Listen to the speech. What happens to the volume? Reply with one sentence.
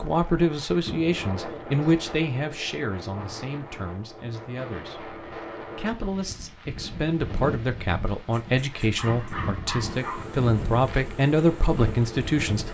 The loudness of the speech goes down, then up.